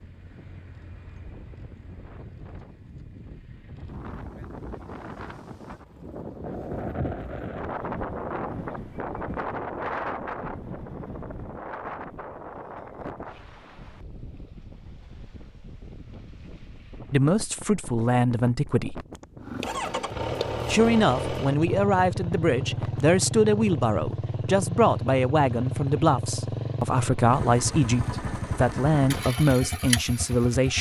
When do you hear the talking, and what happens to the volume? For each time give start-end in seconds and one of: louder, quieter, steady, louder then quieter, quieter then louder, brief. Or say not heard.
17.1-19.0 brief
20.6-30.7 steady.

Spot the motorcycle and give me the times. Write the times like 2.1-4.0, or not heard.
19.4-30.7.